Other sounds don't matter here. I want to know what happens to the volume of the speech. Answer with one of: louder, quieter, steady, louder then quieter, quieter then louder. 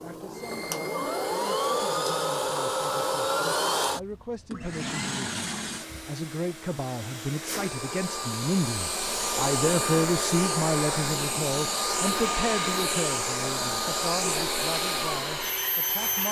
louder then quieter.